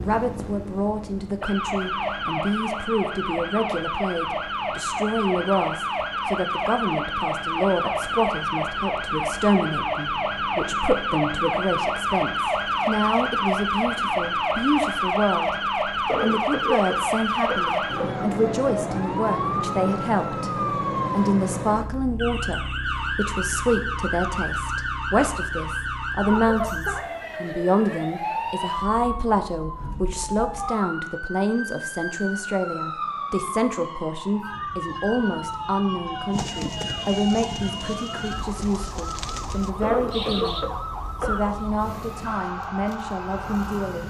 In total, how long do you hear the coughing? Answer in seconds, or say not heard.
4 s.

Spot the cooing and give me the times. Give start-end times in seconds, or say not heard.
36.3-40.7.